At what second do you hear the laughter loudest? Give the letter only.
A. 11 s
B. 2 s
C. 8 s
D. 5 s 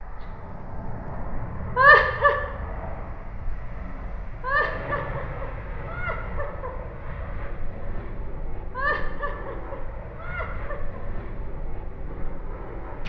B.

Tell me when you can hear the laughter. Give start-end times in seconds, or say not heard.
1.8-2.4, 4.4-6.7, 8.7-11.0.